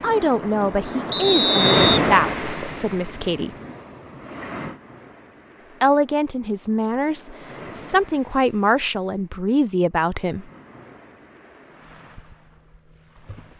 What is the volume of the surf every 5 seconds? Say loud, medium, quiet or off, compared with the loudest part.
loud, quiet, quiet.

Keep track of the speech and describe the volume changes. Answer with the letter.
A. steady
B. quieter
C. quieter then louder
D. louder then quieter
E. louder
A.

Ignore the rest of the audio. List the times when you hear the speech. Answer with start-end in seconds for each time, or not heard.
0.0-3.5, 5.8-10.4.